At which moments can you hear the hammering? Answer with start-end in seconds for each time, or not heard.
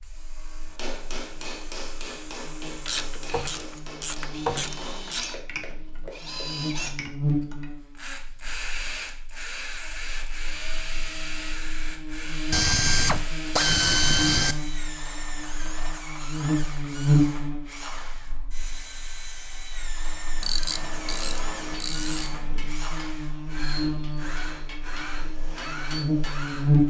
0.7-6.5, 20.6-26.4.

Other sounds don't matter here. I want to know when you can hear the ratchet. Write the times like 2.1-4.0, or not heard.
2.9-5.3, 12.5-14.6, 20.4-22.7.